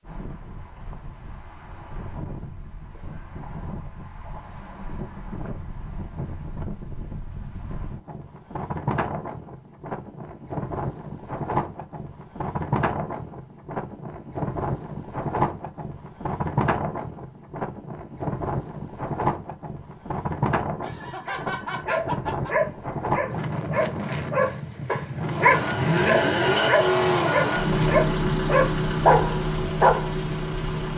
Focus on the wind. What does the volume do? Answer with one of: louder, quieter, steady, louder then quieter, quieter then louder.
louder.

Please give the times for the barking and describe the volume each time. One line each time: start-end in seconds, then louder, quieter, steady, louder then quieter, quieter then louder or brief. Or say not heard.
21.2-30.1 louder.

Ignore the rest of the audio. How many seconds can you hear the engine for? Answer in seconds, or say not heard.
6 s.